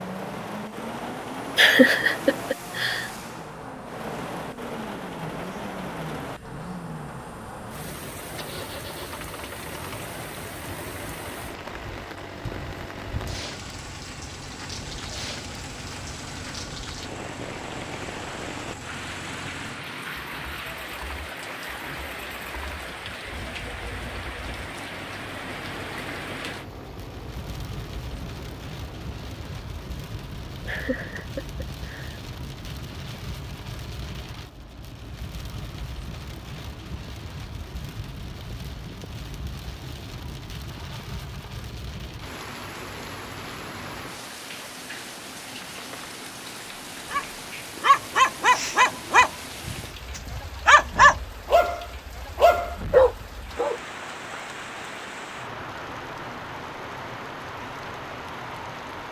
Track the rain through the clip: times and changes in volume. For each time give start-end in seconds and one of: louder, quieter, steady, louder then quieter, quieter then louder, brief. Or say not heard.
0.0-59.0 steady.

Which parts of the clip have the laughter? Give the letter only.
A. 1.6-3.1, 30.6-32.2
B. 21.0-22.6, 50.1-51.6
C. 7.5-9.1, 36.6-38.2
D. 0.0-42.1
A.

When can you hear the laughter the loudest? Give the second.
2 s.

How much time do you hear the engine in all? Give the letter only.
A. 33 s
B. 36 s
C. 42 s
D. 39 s
C.